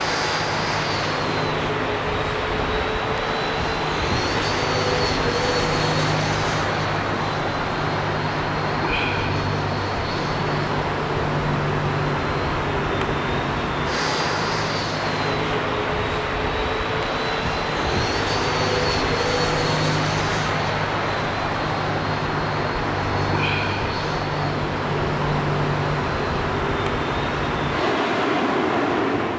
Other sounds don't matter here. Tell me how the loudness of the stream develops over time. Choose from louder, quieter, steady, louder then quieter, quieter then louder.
steady.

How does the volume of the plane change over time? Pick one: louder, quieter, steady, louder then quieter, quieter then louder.
steady.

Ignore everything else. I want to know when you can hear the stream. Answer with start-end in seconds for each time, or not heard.
0.0-29.3.